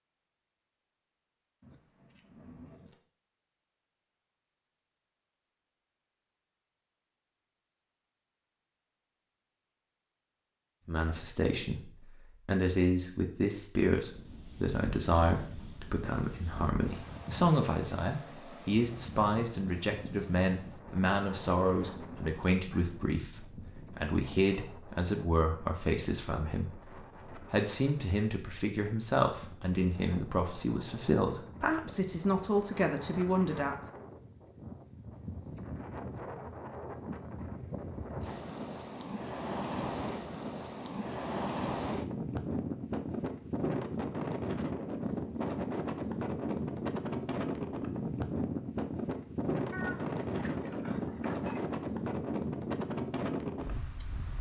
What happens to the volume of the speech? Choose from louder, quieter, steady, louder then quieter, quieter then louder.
steady.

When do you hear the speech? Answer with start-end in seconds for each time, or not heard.
10.8-33.8.